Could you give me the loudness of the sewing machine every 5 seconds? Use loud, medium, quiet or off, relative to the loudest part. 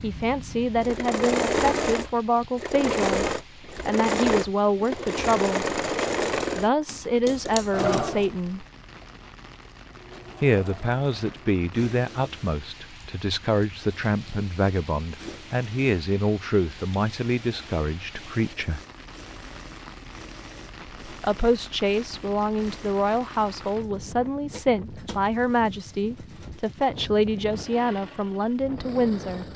loud, loud, quiet, quiet, quiet, quiet.